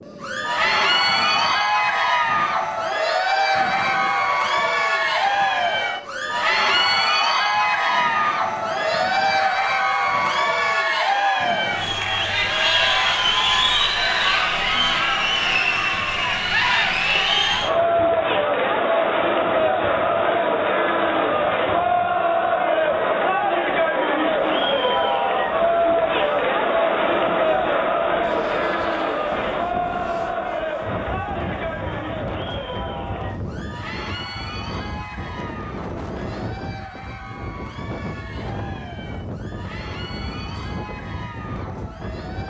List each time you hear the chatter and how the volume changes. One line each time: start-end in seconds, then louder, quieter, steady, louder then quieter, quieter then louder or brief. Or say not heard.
0.1-42.4 quieter.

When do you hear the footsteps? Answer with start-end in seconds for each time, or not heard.
not heard.